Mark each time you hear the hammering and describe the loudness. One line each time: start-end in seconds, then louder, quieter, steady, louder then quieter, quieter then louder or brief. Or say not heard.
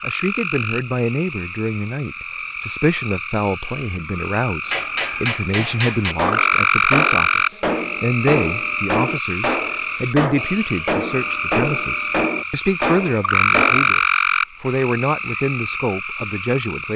4.7-13.9 steady.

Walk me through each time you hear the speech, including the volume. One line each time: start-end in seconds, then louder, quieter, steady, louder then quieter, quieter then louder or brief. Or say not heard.
0.0-16.9 steady.